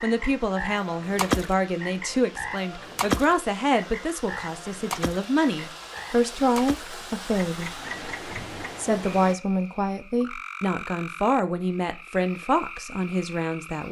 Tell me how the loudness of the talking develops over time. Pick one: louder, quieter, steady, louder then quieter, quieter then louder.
steady.